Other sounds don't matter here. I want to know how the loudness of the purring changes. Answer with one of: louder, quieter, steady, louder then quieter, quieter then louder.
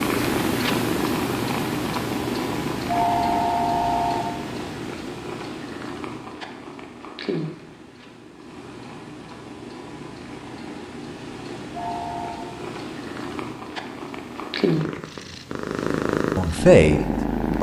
quieter then louder.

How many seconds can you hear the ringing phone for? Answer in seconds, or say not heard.
2 s.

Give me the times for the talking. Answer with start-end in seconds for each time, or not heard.
16.4-17.5.